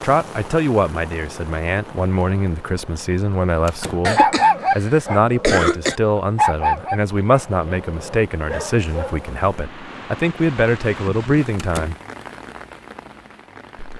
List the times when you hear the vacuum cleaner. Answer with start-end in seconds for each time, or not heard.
not heard.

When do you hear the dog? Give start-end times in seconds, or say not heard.
3.8-9.3.